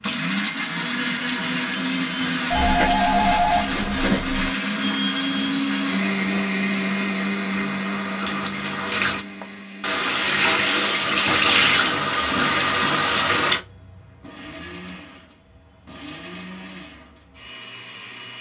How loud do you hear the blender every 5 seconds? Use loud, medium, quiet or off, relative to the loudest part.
loud, loud, quiet, quiet.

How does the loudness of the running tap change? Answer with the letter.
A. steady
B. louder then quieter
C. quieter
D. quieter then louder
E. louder
E.